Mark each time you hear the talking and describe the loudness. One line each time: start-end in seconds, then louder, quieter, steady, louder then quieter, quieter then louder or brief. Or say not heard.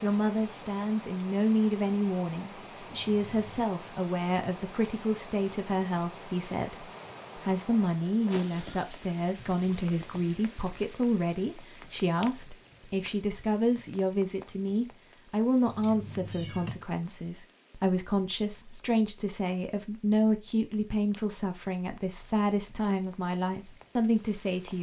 0.0-24.7 steady.